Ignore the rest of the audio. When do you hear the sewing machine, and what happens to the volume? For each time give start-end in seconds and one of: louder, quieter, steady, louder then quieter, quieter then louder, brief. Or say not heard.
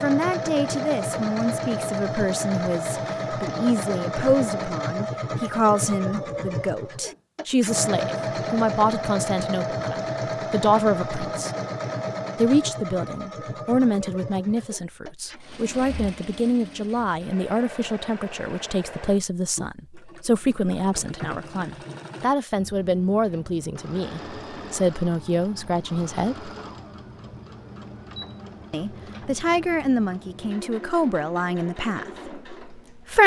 0.0-33.2 quieter.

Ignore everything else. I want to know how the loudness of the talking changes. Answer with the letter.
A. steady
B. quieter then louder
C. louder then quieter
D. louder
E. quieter
A.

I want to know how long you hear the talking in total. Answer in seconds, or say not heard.
30 s.